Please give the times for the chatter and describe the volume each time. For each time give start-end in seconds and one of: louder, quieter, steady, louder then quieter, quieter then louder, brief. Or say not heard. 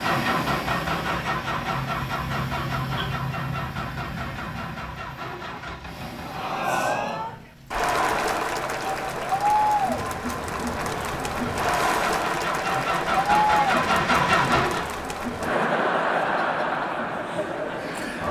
6.2-18.2 steady.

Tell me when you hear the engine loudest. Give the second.
14 s.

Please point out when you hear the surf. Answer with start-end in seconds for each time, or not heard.
0.0-11.9.